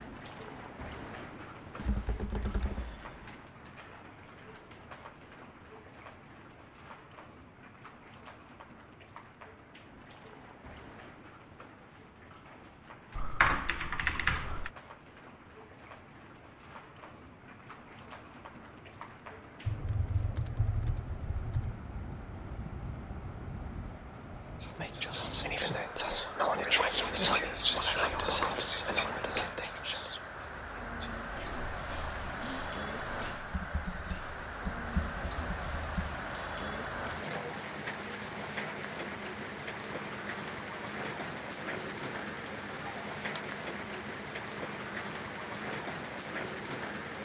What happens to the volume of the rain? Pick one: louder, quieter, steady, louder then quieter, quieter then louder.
louder.